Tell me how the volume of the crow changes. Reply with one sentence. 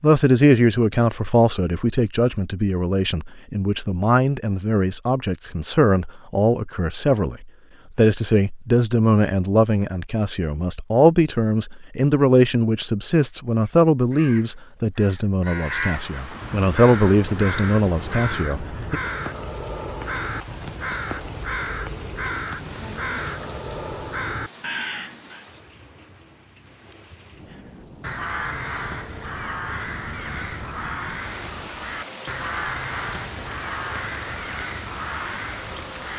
The loudness of the crow stays about the same.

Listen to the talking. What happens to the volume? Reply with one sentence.
The loudness of the talking stays about the same.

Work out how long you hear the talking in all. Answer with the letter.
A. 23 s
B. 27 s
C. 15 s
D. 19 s
D.